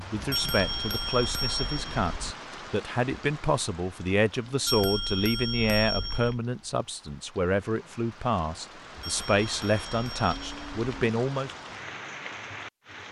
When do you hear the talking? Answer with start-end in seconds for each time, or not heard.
0.0-11.5.